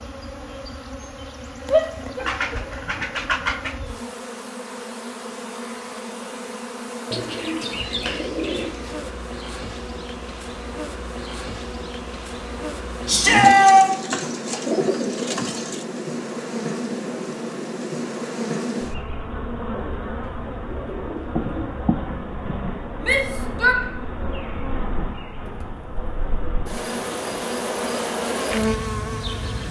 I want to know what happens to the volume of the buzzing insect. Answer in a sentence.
The volume of the buzzing insect goes up.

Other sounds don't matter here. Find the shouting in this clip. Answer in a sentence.
The shouting can be heard from 1.7 to 2.3 s, from 13.1 to 13.9 s and from 23.0 to 23.8 s.